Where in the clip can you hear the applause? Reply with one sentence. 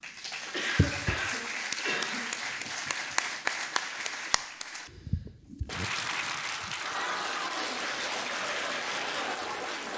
You can hear the applause from 0.0 to 9.9 s.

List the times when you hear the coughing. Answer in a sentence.
You can hear the coughing from 0.5 to 2.2 s and from 5.7 to 6.3 s.